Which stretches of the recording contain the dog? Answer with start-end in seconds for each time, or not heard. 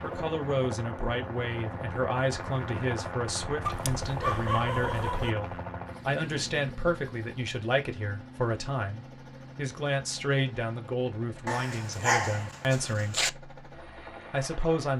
3.6-5.3, 11.4-13.3.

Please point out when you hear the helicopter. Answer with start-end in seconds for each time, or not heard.
0.0-14.9.